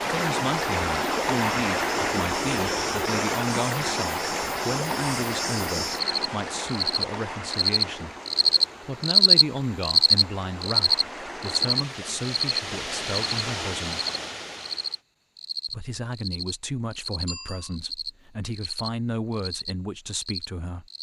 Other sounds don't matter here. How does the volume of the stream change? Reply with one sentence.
The volume of the stream goes down, then up.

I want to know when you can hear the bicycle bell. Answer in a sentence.
The bicycle bell can be heard from 17.2 to 17.8 s.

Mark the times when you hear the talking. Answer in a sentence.
You can hear the talking from 0.0 to 8.2 s, from 8.8 to 14.0 s and from 15.7 to 20.9 s.